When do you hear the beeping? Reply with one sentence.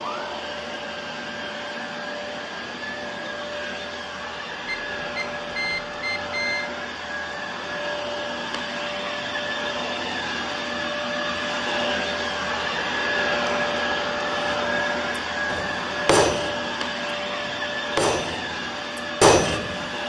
You can hear the beeping from 4.7 to 6.7 s.